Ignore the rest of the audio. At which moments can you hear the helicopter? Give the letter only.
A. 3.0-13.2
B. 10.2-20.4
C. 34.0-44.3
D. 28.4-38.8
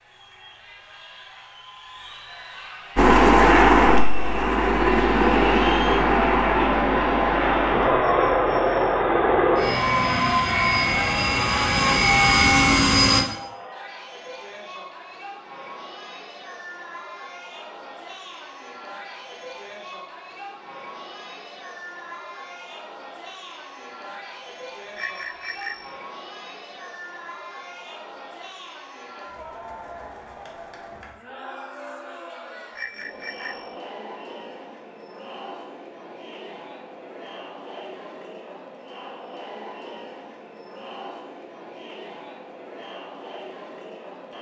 A.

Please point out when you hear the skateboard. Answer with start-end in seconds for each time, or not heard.
not heard.